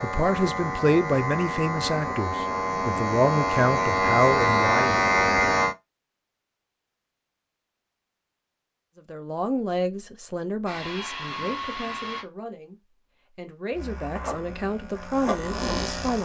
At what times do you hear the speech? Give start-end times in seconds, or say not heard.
0.0-5.0, 8.9-16.2.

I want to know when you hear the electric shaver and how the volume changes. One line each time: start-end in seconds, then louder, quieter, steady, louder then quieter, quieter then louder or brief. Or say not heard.
0.0-5.8 louder
13.7-16.2 brief.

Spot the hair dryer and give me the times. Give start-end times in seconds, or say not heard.
10.7-12.2.